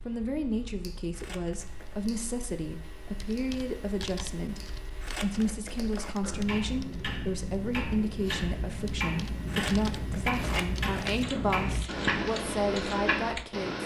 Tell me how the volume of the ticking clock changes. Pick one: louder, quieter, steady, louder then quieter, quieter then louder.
louder.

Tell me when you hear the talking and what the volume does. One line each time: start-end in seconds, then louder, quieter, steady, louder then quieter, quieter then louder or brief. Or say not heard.
0.1-13.8 steady.